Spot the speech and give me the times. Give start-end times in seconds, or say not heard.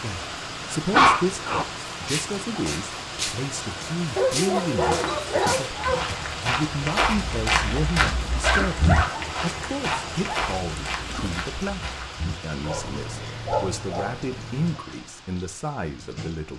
0.0-16.5.